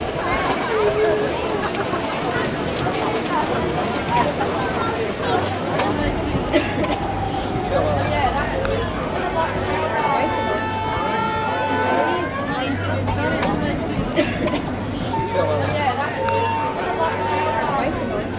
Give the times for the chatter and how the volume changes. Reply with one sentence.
The chatter can be heard from 0.0 to 18.3 s, at a steady volume.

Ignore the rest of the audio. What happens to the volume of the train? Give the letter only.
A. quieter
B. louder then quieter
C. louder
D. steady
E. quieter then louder
D.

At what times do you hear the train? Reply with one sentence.
You can hear the train from 0.0 to 18.3 s.